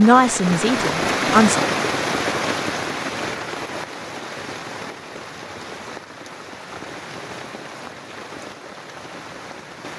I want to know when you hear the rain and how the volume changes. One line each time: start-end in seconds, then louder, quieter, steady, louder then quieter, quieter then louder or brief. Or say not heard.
0.0-9.9 quieter.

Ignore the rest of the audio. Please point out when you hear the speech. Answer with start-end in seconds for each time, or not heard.
0.0-1.6.